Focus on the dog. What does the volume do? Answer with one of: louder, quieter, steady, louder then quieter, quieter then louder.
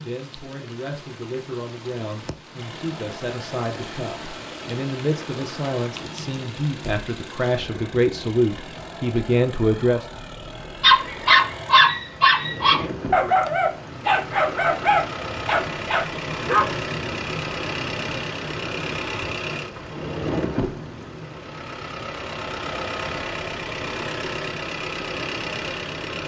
quieter.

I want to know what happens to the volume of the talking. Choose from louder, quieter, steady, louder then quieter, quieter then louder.
louder.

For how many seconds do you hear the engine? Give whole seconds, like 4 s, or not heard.
24 s.